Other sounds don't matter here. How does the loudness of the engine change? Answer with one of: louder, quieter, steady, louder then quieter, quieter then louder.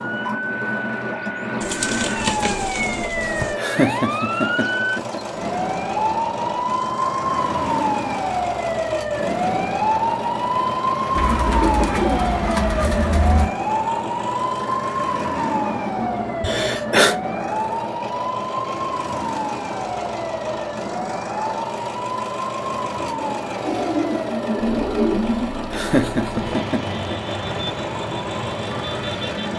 steady.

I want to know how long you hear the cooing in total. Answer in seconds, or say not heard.
6 s.